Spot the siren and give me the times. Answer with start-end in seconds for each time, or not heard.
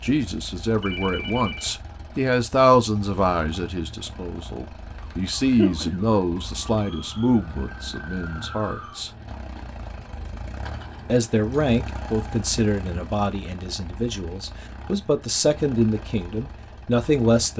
5.0-9.0.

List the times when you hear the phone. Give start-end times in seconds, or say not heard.
0.8-1.8.